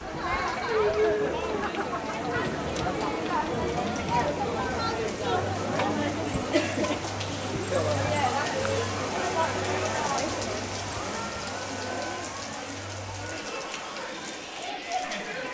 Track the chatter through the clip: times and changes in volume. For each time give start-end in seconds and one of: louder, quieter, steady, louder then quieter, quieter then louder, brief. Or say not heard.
0.0-15.5 quieter.